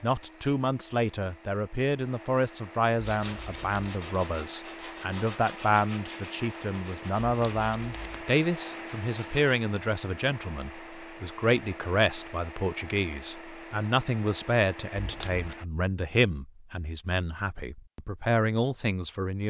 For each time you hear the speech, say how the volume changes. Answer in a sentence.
You can hear the speech from 0.0 to 19.4 s, at a steady volume.